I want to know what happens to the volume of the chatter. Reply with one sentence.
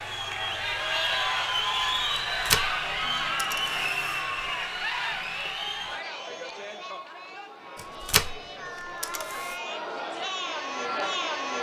The volume of the chatter goes down, then up.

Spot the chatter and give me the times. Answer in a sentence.
You can hear the chatter from 0.0 to 11.5 s.